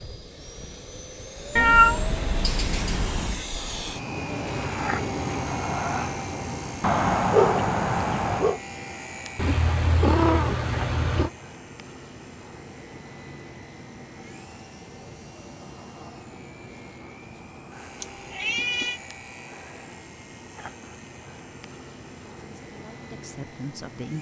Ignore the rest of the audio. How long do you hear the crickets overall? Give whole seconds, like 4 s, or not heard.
not heard.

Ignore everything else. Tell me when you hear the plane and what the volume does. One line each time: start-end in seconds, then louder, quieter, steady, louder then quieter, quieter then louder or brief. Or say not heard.
0.0-24.1 quieter.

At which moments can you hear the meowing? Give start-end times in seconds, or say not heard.
1.6-3.5, 9.3-11.3, 18.0-19.0.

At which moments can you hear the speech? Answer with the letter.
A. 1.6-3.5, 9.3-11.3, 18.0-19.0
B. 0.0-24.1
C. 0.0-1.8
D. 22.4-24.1
D.